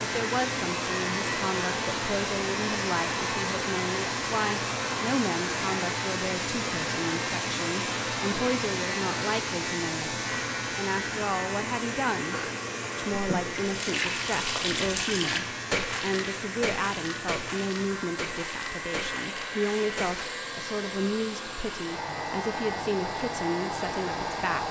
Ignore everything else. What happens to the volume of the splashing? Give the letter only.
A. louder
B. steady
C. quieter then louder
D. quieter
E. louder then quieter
D.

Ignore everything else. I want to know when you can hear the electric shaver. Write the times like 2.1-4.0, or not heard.
0.0-24.4.